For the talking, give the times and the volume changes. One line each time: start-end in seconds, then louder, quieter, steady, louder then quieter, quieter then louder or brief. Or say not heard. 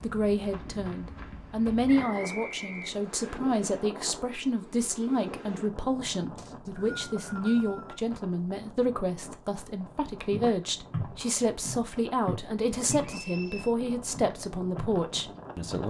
0.0-15.8 steady.